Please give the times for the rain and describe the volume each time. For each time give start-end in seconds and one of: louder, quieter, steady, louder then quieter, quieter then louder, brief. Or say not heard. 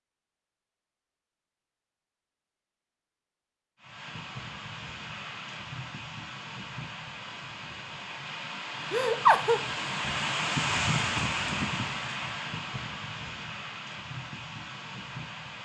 3.8-15.6 louder then quieter.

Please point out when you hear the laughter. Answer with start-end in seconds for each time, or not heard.
8.9-9.6.